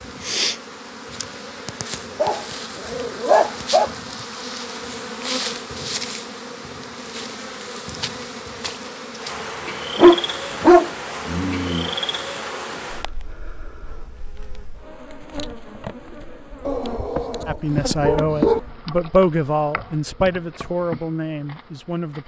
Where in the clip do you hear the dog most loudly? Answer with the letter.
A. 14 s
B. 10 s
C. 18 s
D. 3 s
B.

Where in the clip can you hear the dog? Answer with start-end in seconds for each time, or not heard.
2.1-3.9, 9.9-11.9, 16.6-18.6.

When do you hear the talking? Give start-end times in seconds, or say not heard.
17.4-22.2.